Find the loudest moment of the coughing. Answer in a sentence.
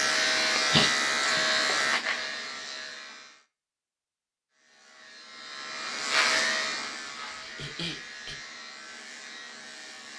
The volume of the coughing peaks at 1 second.